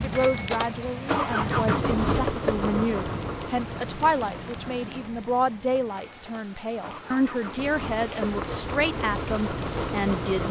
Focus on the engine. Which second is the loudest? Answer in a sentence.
The loudest moment of the engine is at 2 seconds.